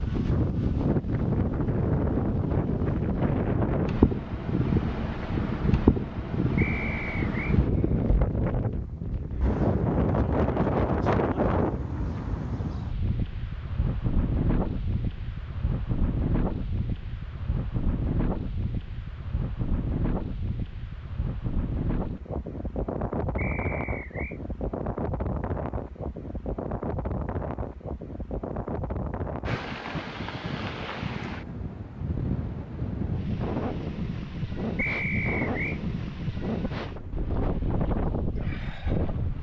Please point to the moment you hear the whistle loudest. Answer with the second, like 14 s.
35 s.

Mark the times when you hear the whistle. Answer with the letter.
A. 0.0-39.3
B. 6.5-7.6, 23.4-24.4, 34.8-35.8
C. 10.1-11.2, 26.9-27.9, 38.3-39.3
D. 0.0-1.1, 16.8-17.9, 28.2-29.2
B.